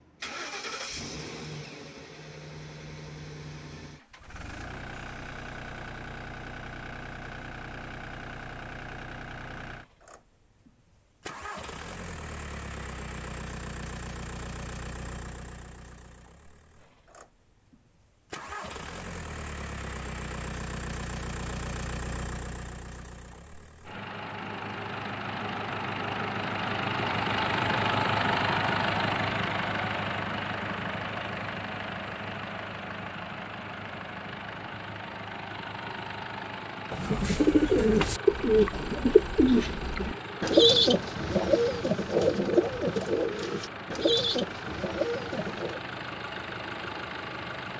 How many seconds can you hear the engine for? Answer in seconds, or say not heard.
48 s.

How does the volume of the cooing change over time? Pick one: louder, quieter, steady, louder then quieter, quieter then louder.
quieter.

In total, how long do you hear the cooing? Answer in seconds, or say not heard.
9 s.